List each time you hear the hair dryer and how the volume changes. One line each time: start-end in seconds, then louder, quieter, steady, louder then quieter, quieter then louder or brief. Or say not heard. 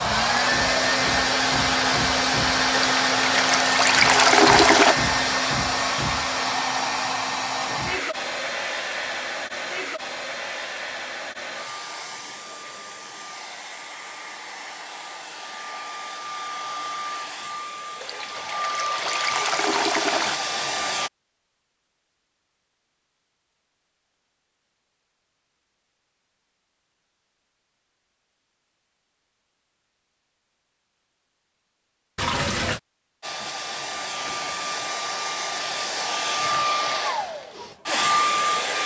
0.0-21.1 quieter then louder
33.2-38.8 louder.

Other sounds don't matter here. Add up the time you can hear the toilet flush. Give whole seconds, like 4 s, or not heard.
5 s.